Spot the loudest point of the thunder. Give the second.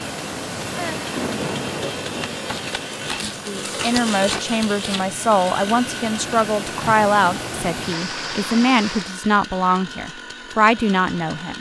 1 s.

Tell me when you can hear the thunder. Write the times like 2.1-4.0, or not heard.
0.8-2.8.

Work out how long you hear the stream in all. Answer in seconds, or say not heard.
9 s.